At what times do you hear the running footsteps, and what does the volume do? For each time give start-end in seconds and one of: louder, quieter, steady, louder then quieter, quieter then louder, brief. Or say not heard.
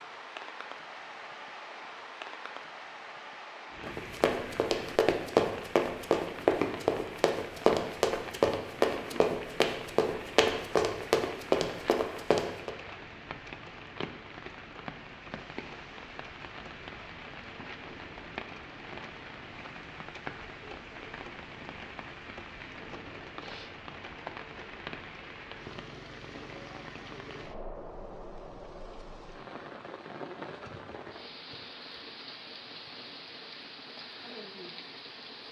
3.8-12.7 steady.